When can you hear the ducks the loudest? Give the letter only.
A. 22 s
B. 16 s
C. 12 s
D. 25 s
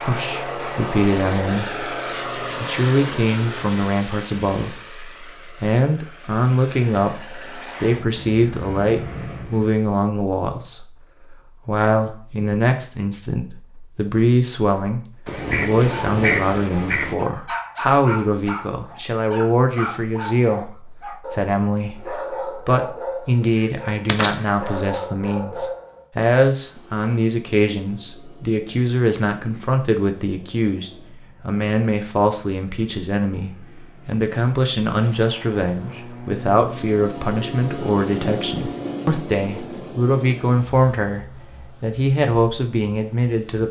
B.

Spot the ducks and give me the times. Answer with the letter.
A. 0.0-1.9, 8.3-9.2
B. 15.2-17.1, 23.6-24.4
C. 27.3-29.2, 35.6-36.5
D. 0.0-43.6
B.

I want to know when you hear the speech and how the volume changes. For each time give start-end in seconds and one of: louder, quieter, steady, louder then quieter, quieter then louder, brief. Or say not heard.
0.0-43.6 steady.